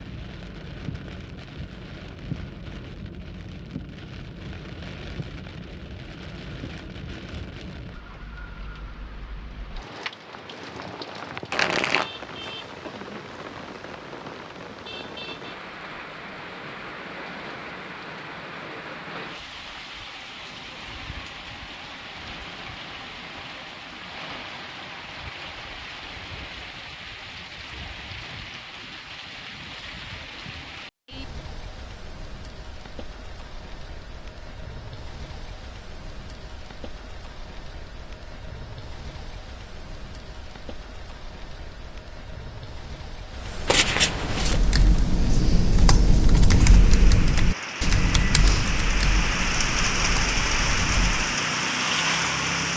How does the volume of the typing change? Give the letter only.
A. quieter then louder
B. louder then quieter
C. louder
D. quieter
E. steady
D.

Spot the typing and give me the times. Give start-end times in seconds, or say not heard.
44.2-51.3.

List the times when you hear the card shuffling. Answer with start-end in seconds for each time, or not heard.
11.5-12.5, 43.6-44.5.